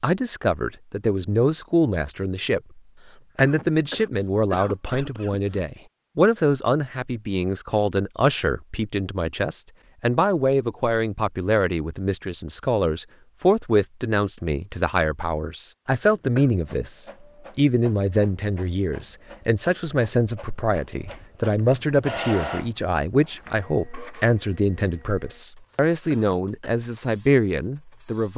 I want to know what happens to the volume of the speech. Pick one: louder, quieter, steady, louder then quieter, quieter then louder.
steady.